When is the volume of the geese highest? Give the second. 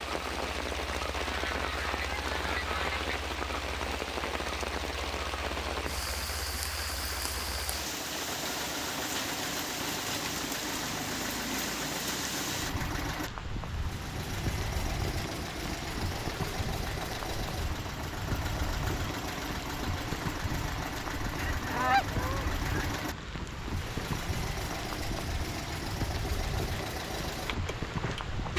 22 s.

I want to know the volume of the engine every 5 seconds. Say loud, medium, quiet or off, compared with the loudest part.
medium, loud, loud, loud, loud, loud.